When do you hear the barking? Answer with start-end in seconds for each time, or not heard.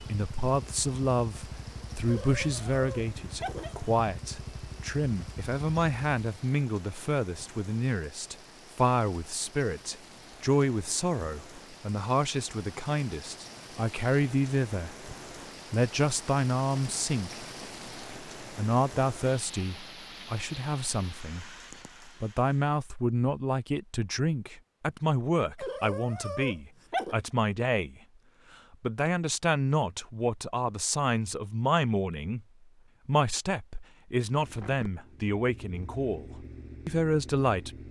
2.0-3.8, 25.6-27.1.